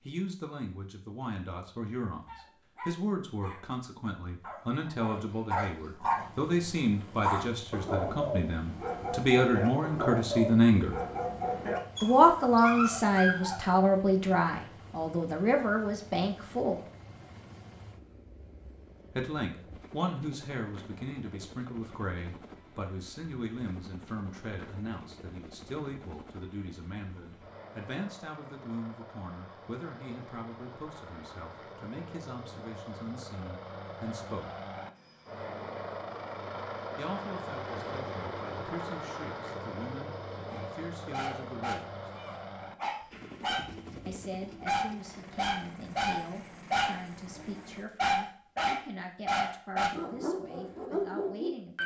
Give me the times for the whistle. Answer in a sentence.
The whistle can't be heard in this clip.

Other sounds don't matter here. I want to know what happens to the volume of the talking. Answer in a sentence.
The loudness of the talking goes up, then down.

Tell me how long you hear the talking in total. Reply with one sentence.
The talking can be heard for 44 seconds in total.